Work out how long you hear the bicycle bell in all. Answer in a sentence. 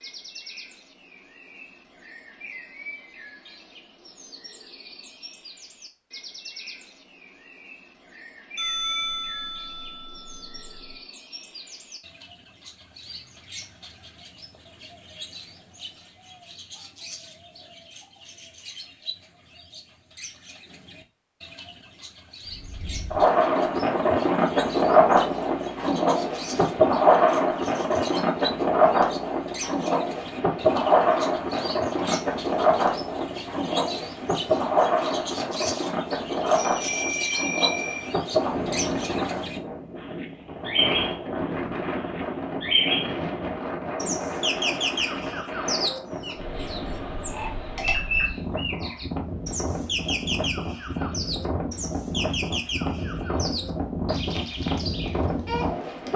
You can hear the bicycle bell for 4 seconds altogether.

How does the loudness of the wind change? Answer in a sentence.
The volume of the wind goes down.